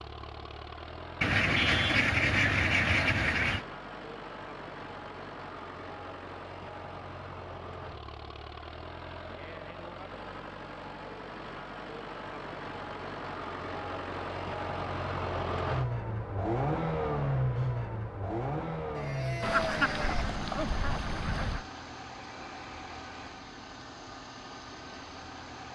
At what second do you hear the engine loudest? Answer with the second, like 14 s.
17 s.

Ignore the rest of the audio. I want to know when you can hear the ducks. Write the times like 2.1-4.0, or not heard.
1.2-3.6, 19.4-21.6.